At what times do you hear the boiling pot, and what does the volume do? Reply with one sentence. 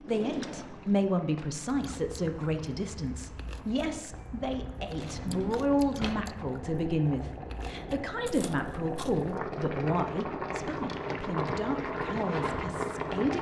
You can hear the boiling pot from 0.0 to 13.3 s, getting louder.